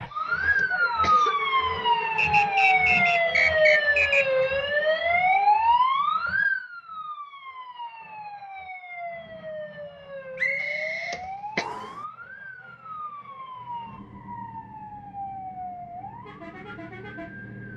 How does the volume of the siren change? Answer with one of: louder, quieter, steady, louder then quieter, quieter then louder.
quieter.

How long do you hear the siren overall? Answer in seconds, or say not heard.
18 s.